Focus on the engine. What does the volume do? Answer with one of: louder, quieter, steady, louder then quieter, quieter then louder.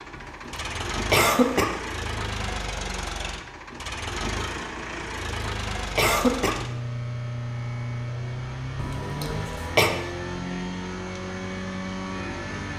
steady.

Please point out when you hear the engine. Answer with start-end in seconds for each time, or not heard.
0.0-12.7.